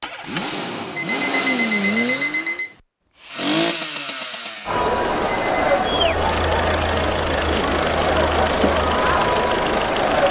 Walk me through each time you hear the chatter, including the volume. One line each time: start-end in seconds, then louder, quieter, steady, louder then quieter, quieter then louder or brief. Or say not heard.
4.7-10.2 steady.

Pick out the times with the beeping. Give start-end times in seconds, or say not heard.
0.9-2.8, 5.2-5.8.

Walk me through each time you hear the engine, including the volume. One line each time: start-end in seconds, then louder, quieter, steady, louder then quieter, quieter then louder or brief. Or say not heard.
0.0-10.2 quieter then louder.